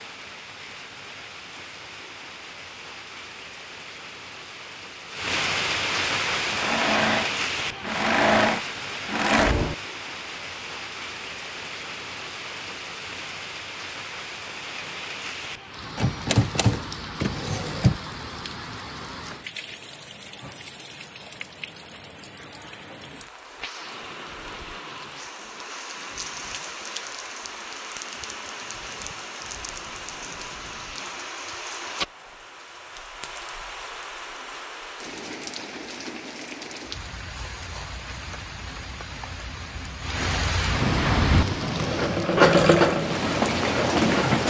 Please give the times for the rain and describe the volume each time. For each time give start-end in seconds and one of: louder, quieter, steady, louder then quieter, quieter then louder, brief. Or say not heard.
0.0-44.4 quieter then louder.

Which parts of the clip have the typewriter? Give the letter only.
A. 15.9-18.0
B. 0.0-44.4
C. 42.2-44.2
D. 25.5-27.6
A.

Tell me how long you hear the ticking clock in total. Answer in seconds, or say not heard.
not heard.